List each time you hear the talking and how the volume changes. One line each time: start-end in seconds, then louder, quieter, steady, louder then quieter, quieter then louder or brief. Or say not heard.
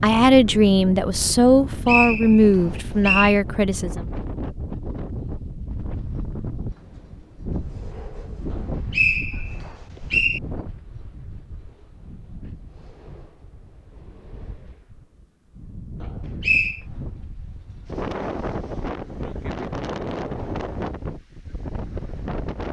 0.0-4.0 steady.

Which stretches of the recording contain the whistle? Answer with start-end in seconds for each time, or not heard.
1.4-3.4, 8.5-10.4, 16.0-16.8.